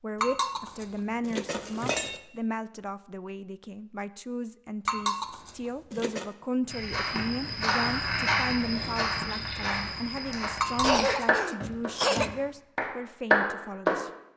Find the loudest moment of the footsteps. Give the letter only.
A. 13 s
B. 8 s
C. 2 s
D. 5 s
B.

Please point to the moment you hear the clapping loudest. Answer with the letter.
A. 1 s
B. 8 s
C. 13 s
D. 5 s
C.